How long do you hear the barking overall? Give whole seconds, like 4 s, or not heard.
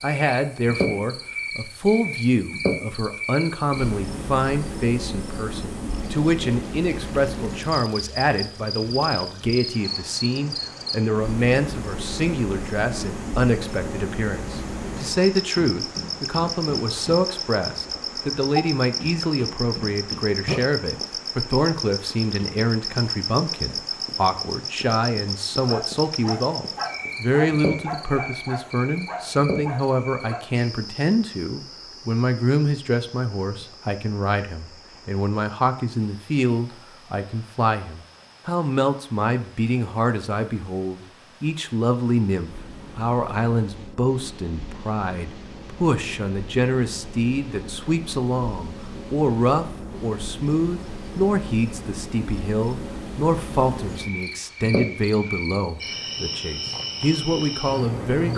5 s.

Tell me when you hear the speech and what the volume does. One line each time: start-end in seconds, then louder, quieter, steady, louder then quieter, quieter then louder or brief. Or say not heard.
0.0-58.3 steady.